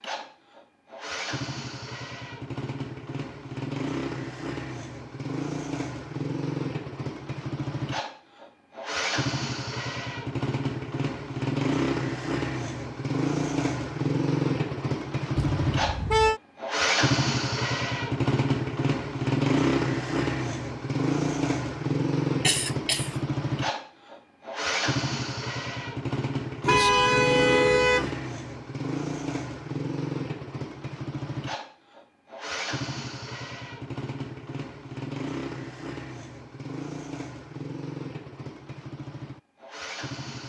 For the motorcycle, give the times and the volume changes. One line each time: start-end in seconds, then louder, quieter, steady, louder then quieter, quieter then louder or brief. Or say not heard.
0.0-40.4 louder then quieter.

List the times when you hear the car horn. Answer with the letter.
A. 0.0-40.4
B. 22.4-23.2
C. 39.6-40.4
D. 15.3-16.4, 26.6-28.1
D.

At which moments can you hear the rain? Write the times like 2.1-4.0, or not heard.
not heard.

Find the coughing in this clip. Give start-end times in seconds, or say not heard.
22.4-23.2.